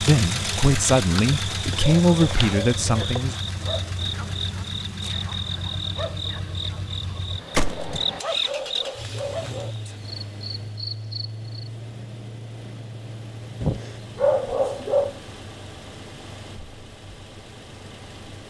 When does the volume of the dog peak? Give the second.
14 s.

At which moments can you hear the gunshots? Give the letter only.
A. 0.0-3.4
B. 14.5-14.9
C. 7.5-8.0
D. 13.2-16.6
C.